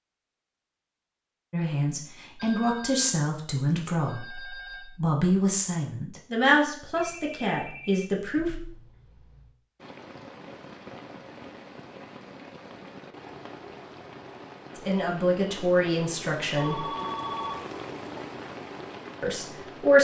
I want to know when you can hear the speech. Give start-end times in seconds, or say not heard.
1.5-8.5, 14.8-16.9, 19.2-19.9.